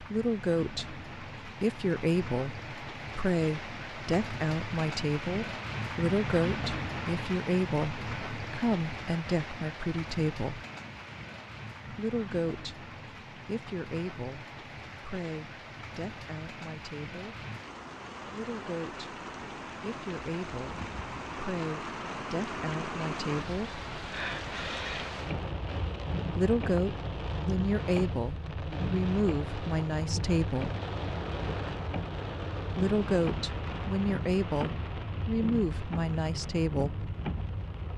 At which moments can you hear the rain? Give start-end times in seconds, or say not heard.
0.0-37.9.